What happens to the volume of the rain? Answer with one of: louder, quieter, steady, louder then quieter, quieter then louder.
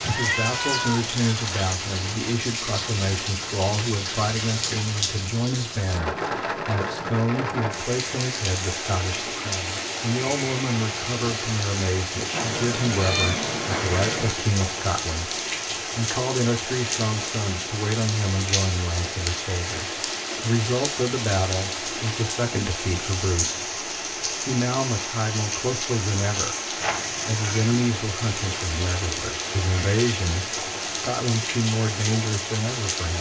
steady.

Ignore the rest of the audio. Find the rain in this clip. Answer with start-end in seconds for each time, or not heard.
0.0-33.1.